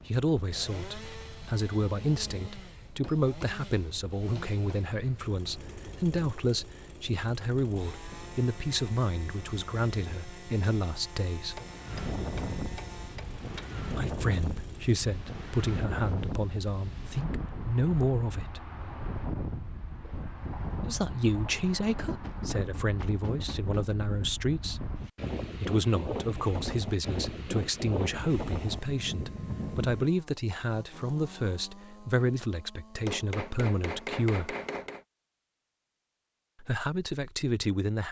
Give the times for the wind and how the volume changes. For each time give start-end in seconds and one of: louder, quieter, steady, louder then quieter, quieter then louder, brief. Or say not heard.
0.0-30.1 louder.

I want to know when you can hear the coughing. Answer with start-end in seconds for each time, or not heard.
not heard.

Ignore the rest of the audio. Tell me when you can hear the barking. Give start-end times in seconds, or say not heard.
not heard.